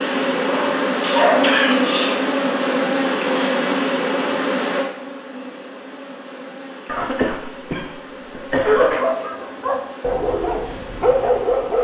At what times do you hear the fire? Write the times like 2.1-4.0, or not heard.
not heard.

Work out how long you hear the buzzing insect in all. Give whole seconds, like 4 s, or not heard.
12 s.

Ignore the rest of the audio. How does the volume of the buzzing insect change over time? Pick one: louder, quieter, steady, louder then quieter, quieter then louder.
quieter.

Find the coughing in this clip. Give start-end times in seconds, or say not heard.
1.0-2.2, 6.8-8.9.